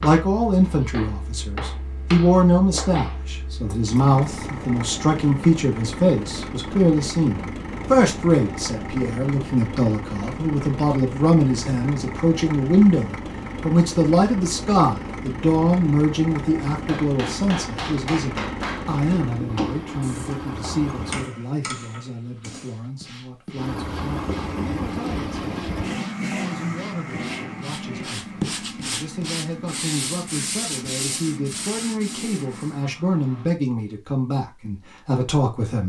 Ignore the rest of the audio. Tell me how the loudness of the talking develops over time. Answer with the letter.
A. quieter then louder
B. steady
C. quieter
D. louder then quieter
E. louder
A.